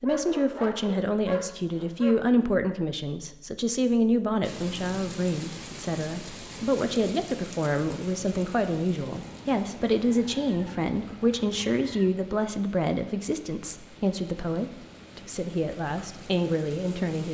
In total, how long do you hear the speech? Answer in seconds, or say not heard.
17 s.